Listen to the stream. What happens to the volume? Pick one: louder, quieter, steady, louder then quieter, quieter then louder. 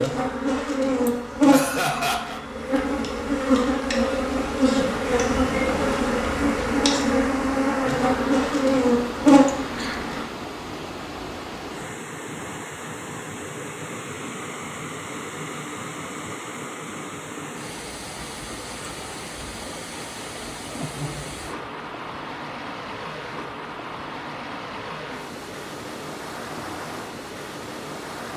steady.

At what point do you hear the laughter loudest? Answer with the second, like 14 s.
2 s.